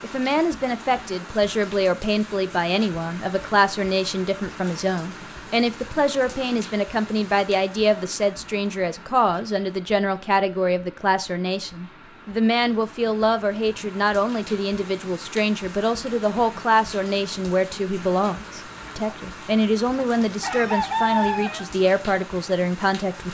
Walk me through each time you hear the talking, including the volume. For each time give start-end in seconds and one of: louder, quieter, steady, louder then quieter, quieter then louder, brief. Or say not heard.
0.0-23.2 steady.